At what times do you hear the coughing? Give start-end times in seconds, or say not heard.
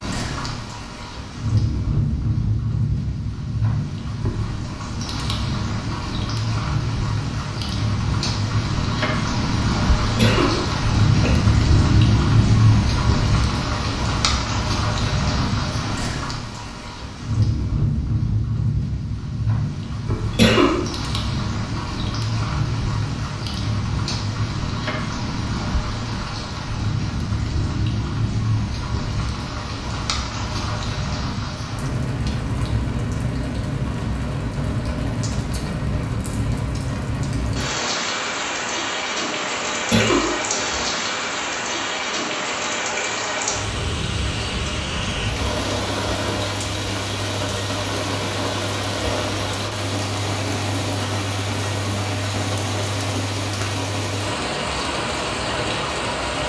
10.2-11.4, 20.1-20.8, 39.7-40.8.